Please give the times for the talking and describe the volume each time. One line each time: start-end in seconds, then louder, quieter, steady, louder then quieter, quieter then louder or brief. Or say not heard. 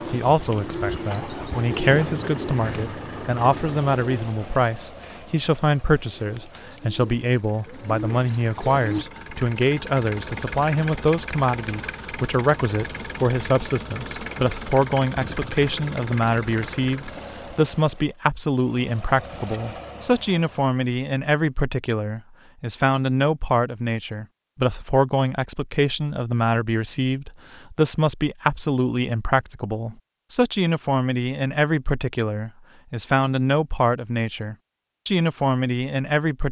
0.1-36.4 steady.